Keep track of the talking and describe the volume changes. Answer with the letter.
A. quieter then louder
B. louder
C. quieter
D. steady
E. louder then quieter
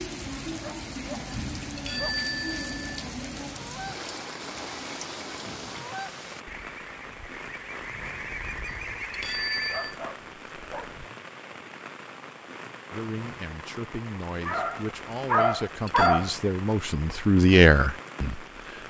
B.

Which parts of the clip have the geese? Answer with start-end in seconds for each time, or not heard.
3.4-9.8.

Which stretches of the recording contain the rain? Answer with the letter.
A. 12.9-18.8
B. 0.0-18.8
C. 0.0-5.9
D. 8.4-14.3
B.